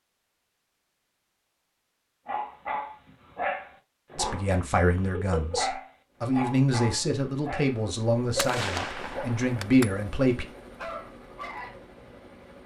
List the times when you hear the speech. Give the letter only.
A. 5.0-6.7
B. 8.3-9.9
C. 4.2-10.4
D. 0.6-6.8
C.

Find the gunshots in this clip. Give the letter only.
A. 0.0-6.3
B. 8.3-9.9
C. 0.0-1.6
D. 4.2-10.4
B.